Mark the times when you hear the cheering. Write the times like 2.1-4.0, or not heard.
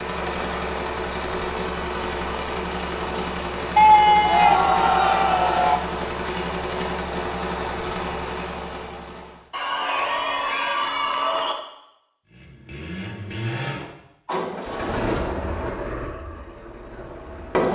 3.8-5.8, 9.5-11.6.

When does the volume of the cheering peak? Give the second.
4 s.